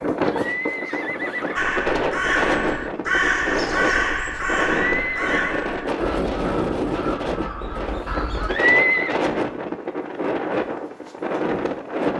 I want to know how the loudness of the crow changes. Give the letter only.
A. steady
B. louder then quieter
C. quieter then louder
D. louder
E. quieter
E.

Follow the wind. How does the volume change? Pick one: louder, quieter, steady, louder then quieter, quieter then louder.
steady.